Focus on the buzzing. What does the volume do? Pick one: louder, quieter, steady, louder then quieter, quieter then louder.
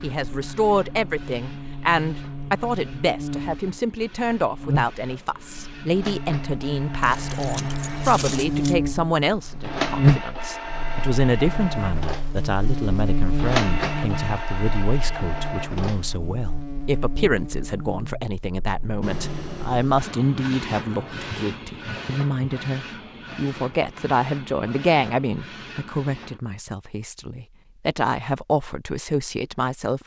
louder then quieter.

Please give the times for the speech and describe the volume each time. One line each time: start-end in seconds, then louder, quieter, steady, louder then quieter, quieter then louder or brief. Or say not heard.
0.0-30.0 steady.